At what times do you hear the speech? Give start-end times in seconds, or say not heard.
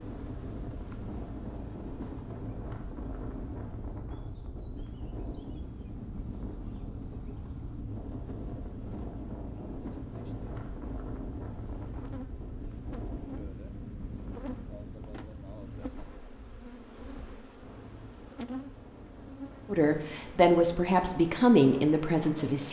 19.7-22.6.